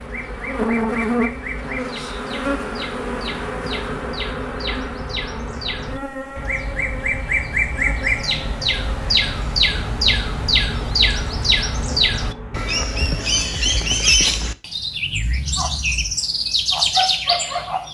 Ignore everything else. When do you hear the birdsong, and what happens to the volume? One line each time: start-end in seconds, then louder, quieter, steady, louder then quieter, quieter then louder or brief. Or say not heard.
0.0-17.8 louder.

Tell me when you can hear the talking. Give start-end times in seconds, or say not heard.
not heard.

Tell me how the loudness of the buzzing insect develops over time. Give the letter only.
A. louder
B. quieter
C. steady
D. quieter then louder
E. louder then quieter
B.